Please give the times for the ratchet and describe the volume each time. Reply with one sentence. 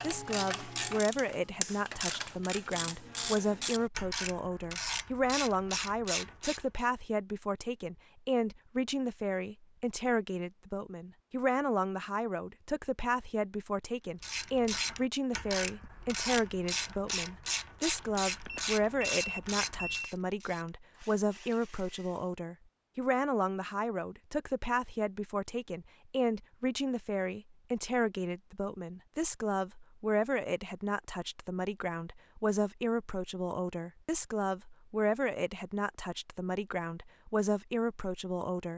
You can hear the ratchet from 0.0 to 6.8 s, at a steady volume; and from 14.2 to 22.3 s, getting quieter.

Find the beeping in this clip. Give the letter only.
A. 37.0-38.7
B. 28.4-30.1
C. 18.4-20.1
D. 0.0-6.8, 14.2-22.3
C.